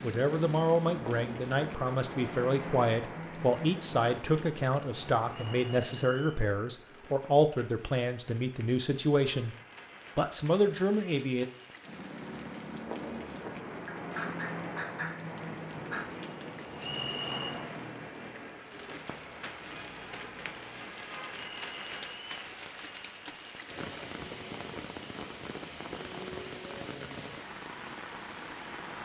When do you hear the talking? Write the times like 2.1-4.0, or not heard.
0.0-9.6, 10.2-11.4.